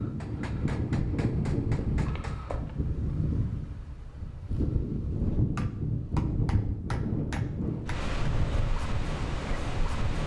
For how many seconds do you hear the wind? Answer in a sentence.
You can hear the wind for 10 seconds altogether.